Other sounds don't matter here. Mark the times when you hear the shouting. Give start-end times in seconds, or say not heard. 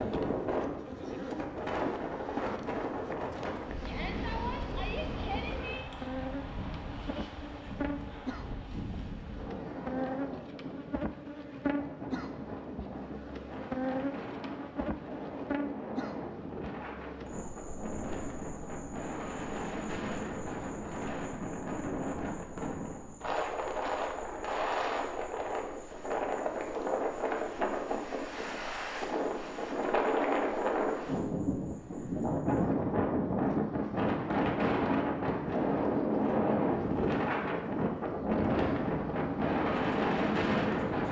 3.9-5.8.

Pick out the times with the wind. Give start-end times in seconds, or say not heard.
0.0-41.0.